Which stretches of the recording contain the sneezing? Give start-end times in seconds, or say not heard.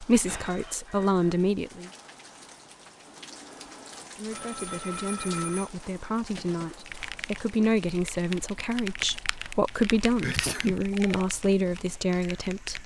10.2-10.8.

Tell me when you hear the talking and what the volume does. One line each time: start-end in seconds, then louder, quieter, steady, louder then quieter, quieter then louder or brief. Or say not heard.
0.0-1.9 brief
4.2-12.8 louder.